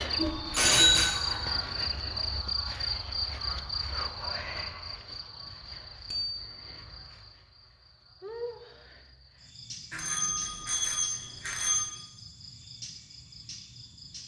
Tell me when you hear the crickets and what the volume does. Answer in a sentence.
You can hear the crickets from 0.0 to 14.2 s, getting quieter.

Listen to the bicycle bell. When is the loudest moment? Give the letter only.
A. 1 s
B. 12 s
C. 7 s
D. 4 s
A.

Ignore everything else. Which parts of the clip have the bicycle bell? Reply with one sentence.
The bicycle bell can be heard from 0.1 to 1.1 s, from 6.1 to 6.6 s and from 9.9 to 11.9 s.